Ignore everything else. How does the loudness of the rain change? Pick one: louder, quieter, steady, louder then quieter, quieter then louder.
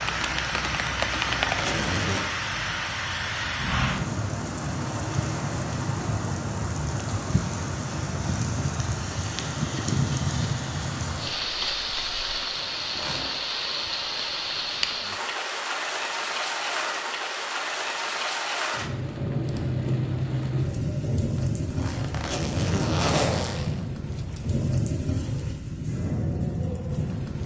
steady.